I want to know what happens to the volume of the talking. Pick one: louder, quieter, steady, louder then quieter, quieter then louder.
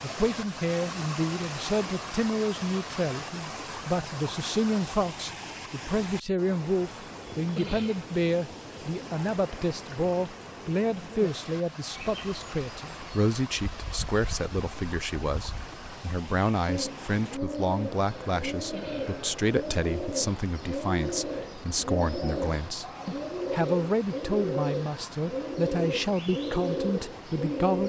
steady.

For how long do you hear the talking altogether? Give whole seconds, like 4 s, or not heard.
28 s.